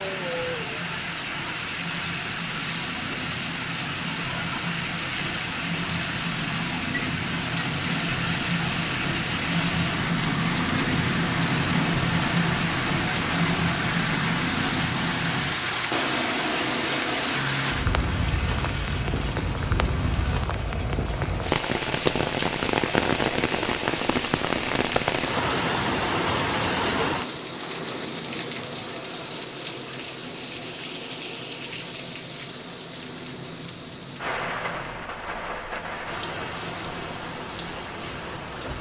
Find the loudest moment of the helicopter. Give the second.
12 s.